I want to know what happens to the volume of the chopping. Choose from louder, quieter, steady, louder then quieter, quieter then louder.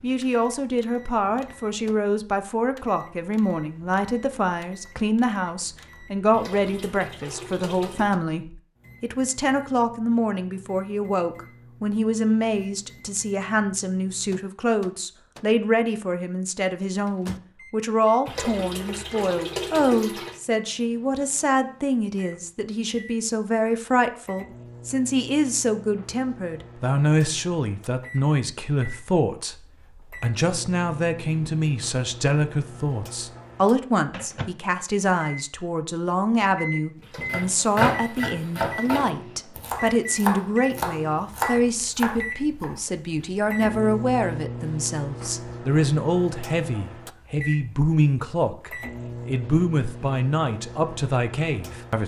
quieter then louder.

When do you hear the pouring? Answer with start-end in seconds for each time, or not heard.
6.3-8.1, 18.2-20.4, 37.0-37.6.